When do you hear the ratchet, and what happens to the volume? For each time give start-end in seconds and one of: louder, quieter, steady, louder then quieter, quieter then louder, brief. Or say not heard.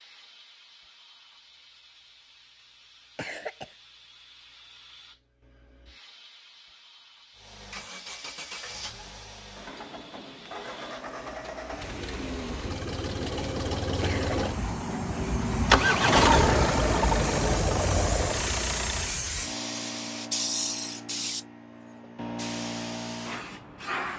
not heard.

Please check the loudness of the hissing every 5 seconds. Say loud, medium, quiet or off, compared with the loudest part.
quiet, quiet, quiet, loud, loud.